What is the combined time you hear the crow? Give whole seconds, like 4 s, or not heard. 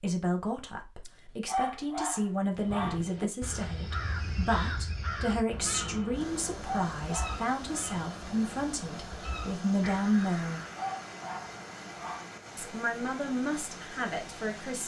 8 s.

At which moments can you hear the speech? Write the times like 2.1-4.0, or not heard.
0.0-10.6, 12.6-14.8.